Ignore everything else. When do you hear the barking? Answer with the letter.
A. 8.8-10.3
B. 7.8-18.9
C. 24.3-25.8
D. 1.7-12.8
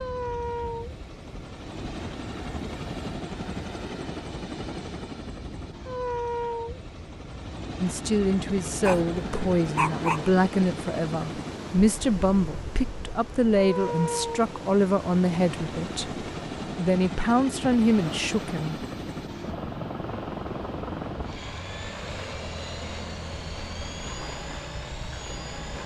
A.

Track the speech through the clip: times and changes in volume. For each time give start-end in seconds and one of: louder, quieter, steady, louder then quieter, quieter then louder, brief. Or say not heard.
7.8-18.9 steady.